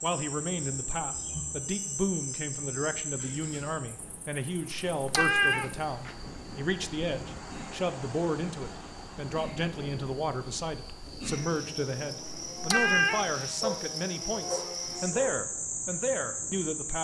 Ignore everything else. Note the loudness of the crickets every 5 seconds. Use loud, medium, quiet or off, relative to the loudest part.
loud, quiet, loud, loud.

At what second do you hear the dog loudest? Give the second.
14 s.